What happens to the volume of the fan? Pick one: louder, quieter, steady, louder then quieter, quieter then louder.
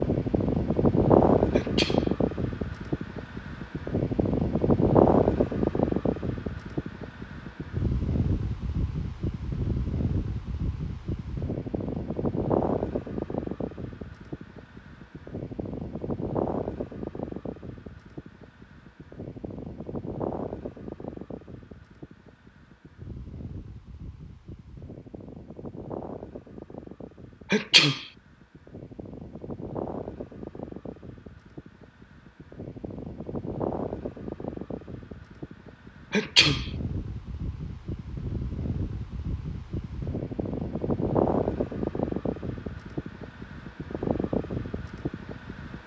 quieter then louder.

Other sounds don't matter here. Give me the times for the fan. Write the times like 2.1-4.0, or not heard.
0.0-45.8.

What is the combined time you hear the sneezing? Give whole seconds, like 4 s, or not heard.
2 s.